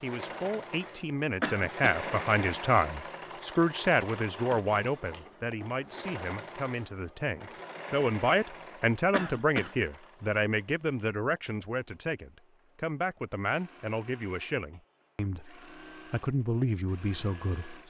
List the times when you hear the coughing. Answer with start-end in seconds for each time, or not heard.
1.4-2.0, 9.1-9.8.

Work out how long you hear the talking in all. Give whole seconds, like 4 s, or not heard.
18 s.